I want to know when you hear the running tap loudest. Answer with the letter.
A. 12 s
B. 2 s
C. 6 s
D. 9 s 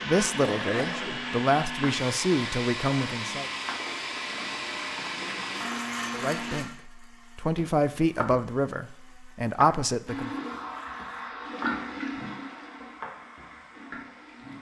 A.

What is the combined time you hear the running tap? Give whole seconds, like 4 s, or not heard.
11 s.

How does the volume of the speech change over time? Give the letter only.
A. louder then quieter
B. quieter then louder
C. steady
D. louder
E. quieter
B.